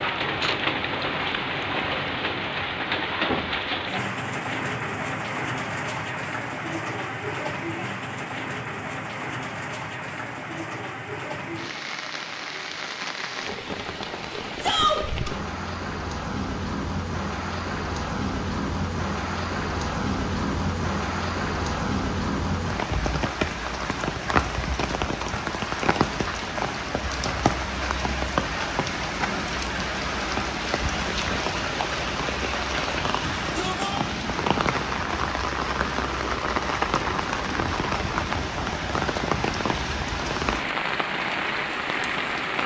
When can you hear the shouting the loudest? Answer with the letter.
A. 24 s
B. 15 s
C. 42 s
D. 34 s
B.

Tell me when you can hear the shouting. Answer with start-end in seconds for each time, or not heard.
14.6-15.0, 33.1-34.0.